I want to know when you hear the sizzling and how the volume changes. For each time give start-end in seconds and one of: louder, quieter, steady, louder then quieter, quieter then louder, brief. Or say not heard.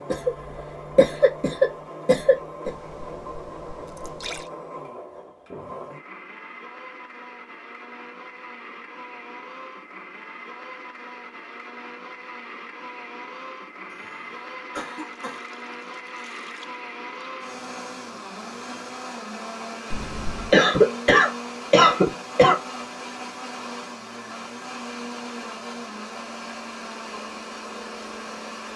not heard.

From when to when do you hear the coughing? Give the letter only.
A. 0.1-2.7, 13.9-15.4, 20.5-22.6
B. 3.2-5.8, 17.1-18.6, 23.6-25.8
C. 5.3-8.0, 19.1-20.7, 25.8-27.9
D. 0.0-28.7
A.